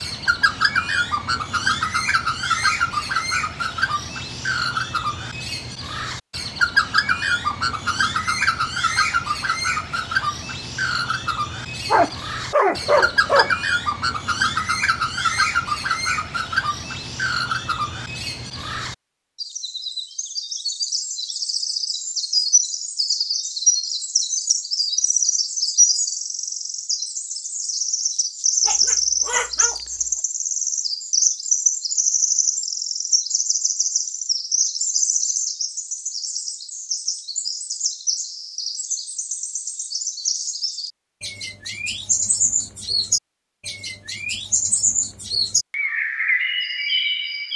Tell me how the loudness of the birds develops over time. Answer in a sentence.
The loudness of the birds stays about the same.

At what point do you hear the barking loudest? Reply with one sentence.
The volume of the barking peaks at 13 seconds.